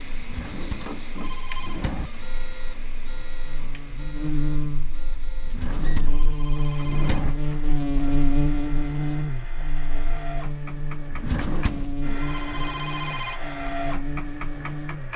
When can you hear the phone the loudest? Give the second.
13 s.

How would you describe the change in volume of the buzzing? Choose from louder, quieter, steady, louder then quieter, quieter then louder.
louder then quieter.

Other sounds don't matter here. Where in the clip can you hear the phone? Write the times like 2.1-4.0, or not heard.
1.1-1.9, 6.0-7.2, 12.2-13.4.